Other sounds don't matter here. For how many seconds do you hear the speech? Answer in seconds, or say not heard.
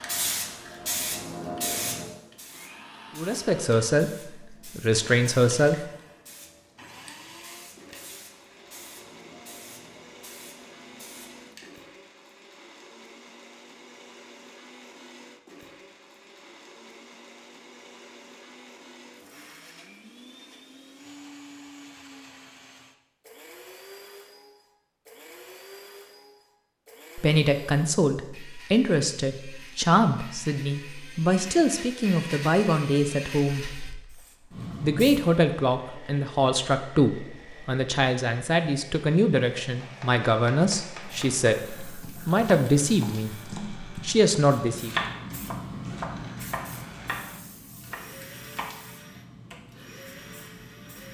19 s.